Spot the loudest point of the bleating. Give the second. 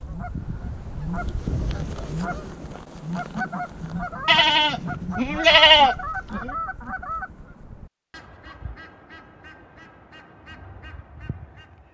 6 s.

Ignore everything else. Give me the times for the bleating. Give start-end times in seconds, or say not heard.
4.2-6.5.